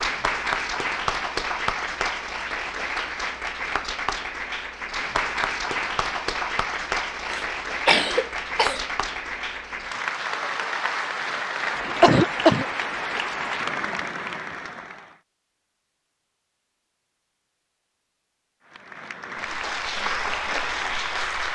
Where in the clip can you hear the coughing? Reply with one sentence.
The coughing can be heard from 7.3 to 8.8 s and from 12.0 to 12.7 s.